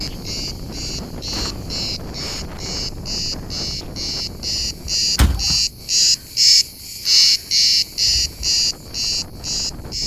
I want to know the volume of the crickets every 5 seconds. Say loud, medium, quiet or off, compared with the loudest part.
medium, loud.